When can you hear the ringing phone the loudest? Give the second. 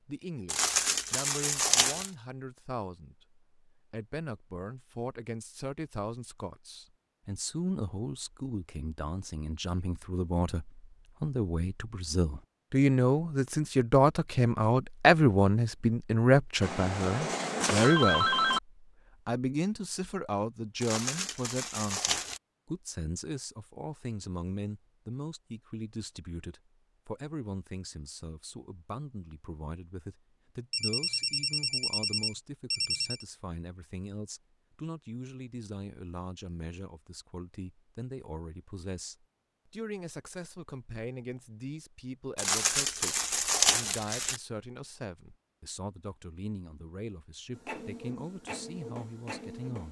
18 s.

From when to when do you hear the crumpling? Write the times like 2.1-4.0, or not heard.
0.5-2.1, 20.8-22.4, 42.4-44.4.